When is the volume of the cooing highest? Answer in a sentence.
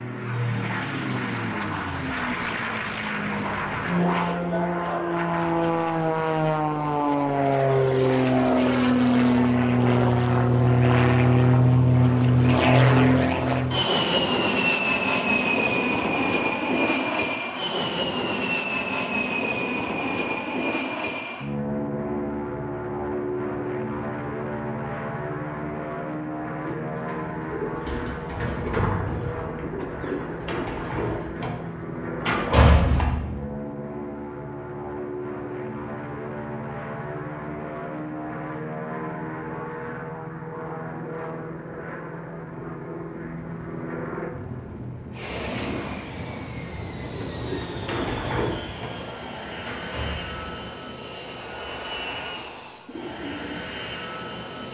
The volume of the cooing peaks at 33 seconds.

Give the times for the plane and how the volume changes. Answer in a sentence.
You can hear the plane from 0.0 to 54.7 s, getting quieter.